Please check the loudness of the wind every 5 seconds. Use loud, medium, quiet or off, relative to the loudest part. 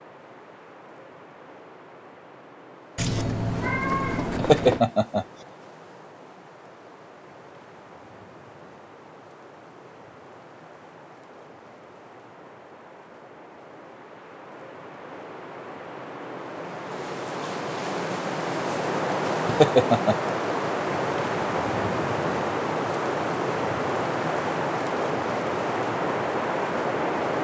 quiet, quiet, quiet, loud, loud, loud.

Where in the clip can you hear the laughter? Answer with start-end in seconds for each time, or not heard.
4.3-5.2, 19.4-20.3.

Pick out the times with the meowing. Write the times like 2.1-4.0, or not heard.
3.0-4.8.